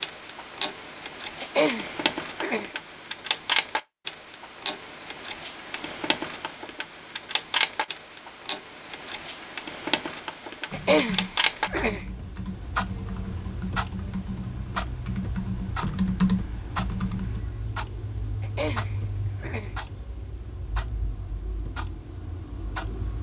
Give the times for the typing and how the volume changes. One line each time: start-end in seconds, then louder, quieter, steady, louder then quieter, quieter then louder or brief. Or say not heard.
10.7-17.4 louder.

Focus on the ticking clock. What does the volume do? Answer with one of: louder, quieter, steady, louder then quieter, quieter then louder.
quieter.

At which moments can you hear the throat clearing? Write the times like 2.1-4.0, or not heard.
1.4-2.7, 10.7-12.1, 18.4-19.8.